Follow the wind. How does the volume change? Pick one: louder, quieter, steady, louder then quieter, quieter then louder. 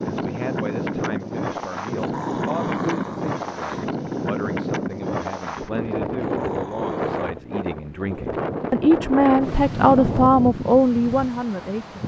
steady.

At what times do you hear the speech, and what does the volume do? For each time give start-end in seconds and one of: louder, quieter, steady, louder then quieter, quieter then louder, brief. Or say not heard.
0.1-12.0 louder.